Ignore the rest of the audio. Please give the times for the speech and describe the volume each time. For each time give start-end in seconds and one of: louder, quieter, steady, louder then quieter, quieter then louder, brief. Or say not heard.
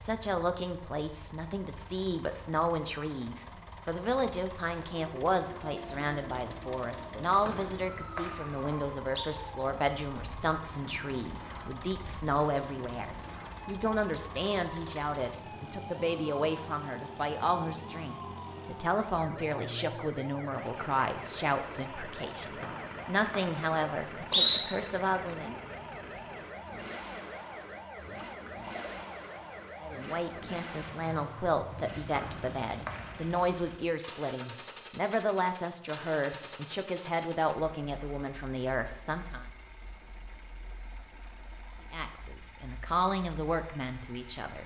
0.0-25.5 steady
29.8-39.5 steady
41.9-44.6 brief.